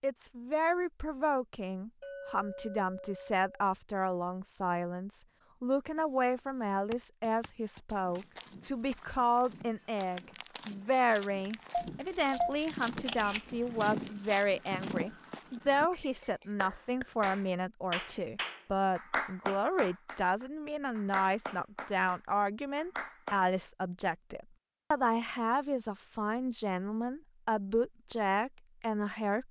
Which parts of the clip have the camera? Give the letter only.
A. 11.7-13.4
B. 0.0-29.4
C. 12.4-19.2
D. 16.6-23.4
A.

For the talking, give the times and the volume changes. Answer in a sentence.
You can hear the talking from 0.0 to 29.4 s, at a steady volume.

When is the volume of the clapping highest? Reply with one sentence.
The volume of the clapping peaks at 19 seconds.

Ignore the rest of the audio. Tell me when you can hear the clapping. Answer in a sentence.
The clapping can be heard from 16.6 to 23.4 s.